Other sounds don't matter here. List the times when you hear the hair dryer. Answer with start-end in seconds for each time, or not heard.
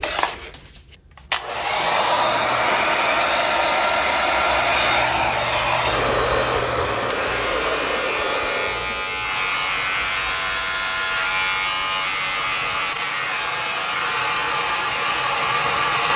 0.0-16.1.